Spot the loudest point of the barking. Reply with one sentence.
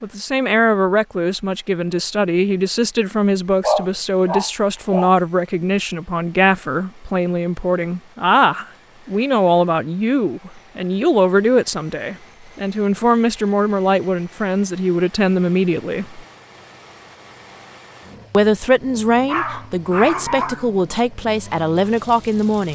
The loudest moment of the barking is at 4 seconds.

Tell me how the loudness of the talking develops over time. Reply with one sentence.
The volume of the talking stays about the same.